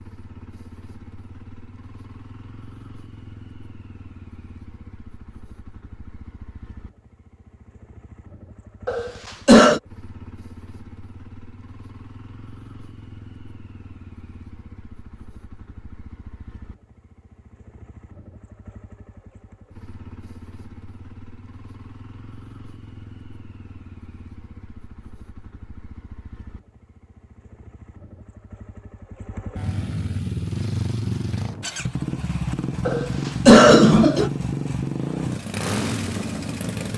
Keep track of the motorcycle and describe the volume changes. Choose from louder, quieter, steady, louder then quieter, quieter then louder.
louder.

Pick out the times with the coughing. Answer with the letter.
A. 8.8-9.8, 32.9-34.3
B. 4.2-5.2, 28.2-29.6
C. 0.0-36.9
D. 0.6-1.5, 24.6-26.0
A.